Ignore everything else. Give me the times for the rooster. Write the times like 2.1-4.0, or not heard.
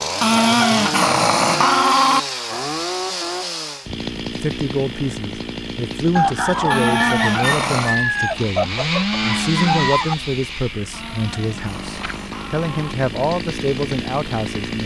6.2-10.2.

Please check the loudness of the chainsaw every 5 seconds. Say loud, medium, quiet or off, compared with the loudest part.
loud, loud, medium.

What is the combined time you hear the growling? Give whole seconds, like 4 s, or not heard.
5 s.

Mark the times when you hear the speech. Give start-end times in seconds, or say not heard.
4.3-14.8.